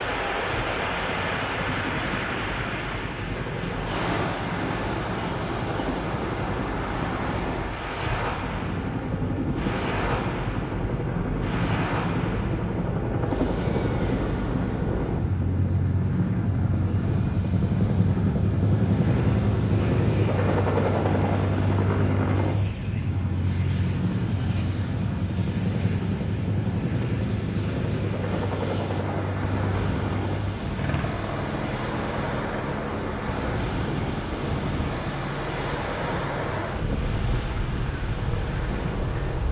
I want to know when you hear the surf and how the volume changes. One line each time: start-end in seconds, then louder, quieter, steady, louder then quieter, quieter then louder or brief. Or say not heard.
0.0-39.4 quieter then louder.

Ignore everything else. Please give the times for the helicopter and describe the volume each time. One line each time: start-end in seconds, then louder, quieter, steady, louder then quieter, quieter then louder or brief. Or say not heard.
0.0-39.4 louder then quieter.